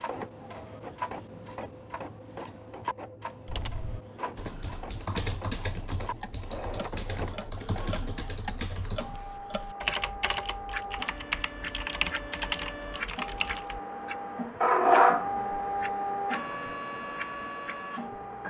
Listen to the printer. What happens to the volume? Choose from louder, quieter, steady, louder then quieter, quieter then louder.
louder.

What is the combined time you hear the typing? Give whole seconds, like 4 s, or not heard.
10 s.